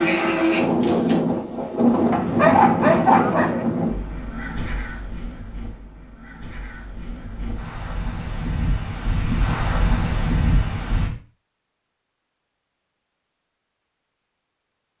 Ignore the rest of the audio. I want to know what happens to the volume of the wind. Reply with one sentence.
The loudness of the wind goes down, then up.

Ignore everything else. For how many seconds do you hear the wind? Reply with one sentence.
You can hear the wind for 11 seconds altogether.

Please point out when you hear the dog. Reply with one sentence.
The dog can be heard from 2.1 to 3.6 s.